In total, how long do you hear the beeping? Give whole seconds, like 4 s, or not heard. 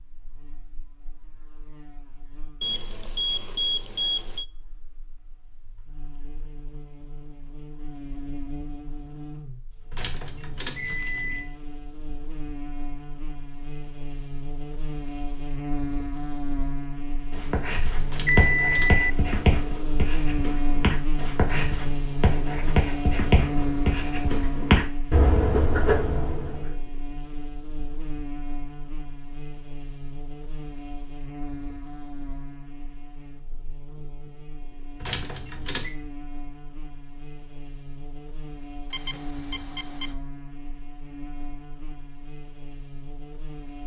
5 s.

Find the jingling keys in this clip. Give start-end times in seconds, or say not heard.
9.9-11.4, 18.1-18.9, 35.0-35.9.